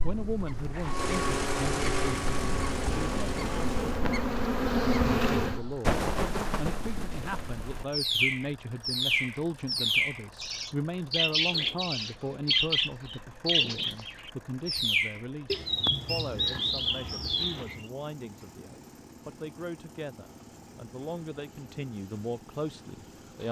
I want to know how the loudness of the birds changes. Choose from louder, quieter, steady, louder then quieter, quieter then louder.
louder.